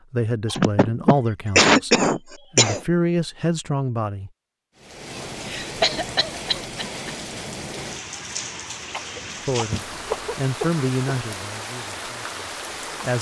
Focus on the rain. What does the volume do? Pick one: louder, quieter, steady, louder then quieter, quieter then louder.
steady.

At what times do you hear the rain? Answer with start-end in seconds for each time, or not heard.
4.8-13.1.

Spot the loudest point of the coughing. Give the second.
2 s.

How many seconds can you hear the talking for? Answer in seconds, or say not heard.
8 s.